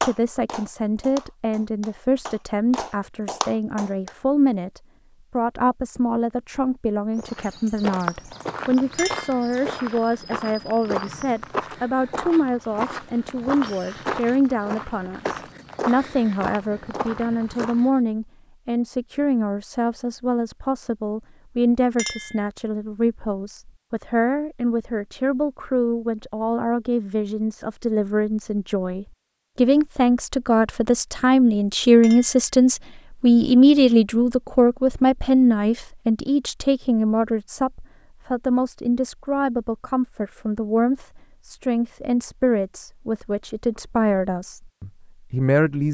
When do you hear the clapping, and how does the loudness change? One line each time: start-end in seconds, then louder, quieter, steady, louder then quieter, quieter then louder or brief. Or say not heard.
0.0-4.2 louder.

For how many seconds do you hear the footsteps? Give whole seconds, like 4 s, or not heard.
11 s.